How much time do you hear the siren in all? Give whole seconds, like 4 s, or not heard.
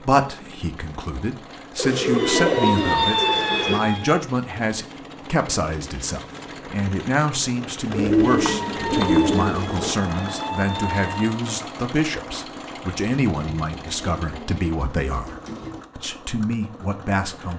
5 s.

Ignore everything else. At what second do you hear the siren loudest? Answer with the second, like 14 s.
3 s.